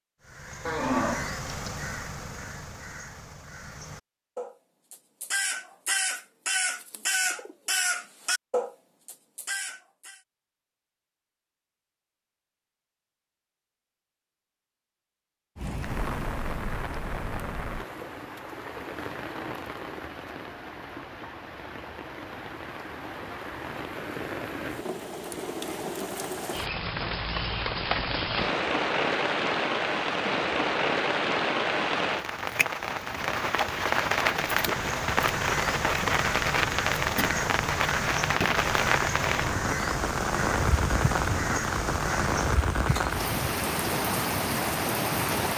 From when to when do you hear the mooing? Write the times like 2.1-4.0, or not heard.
0.7-1.7.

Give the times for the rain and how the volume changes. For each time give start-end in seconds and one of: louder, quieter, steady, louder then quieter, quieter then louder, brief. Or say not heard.
15.6-45.5 louder.